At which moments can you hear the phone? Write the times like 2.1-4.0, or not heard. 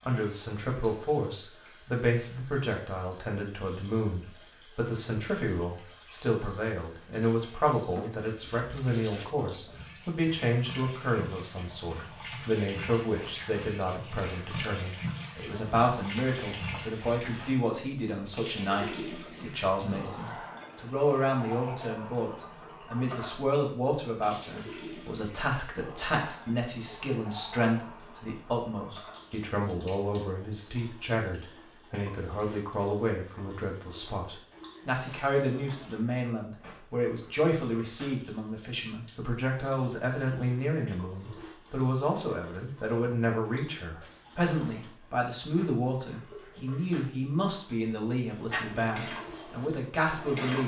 not heard.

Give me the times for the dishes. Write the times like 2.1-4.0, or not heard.
48.5-50.6.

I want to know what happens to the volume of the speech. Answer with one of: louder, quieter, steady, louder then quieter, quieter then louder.
steady.